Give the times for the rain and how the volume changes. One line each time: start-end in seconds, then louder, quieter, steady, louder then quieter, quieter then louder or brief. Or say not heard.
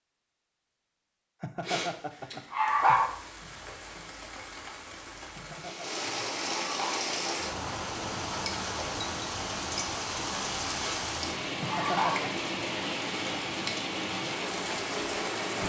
2.6-15.6 louder.